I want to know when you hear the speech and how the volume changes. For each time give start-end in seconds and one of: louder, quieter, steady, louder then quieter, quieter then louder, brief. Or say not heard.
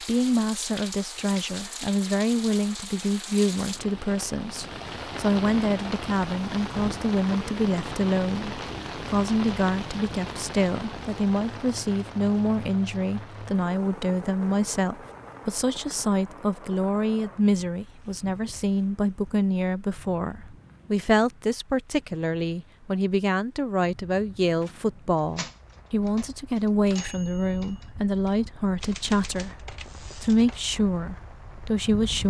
0.0-32.2 steady.